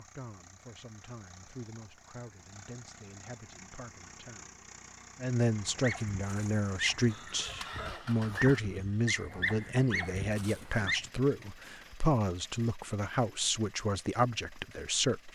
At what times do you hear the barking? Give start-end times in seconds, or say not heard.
5.8-11.0.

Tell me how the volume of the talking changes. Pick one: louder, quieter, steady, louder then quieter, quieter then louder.
louder.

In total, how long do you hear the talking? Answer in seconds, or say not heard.
15 s.